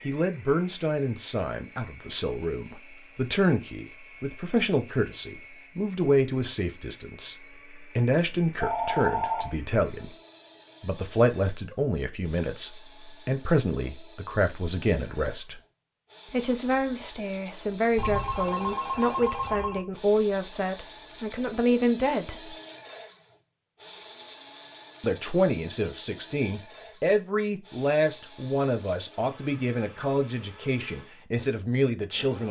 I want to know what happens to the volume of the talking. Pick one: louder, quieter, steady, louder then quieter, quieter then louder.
steady.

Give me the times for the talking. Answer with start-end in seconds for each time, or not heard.
0.1-10.1, 10.8-15.6, 16.3-22.6, 25.0-32.4.